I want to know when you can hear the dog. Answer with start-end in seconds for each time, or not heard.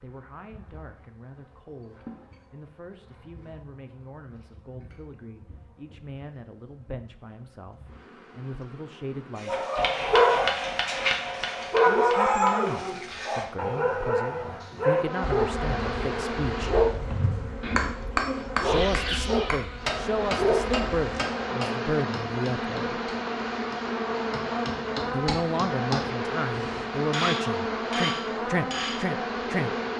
9.4-21.2.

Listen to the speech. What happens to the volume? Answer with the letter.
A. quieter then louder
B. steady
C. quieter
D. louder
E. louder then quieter
D.